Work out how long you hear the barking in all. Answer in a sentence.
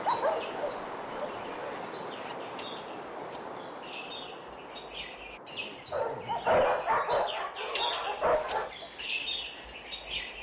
The barking can be heard for 5 seconds in total.